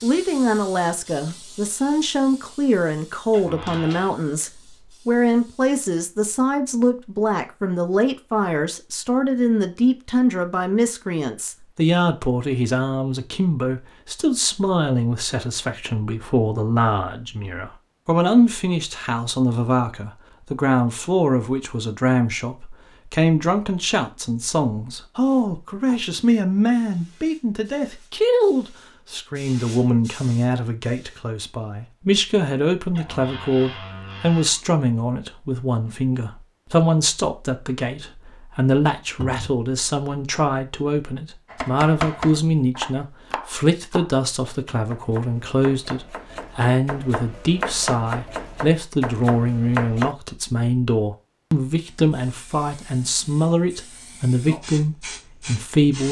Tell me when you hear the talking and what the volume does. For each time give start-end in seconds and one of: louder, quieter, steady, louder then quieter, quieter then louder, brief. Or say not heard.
0.0-56.0 steady.